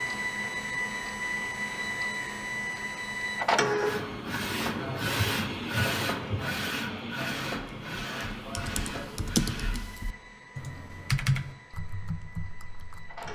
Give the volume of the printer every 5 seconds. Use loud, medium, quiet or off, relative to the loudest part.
loud, loud, quiet.